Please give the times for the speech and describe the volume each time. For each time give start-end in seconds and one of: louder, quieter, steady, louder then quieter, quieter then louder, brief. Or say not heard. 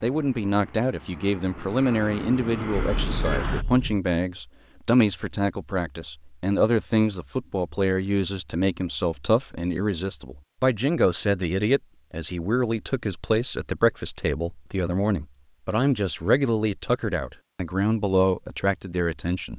0.0-19.5 steady.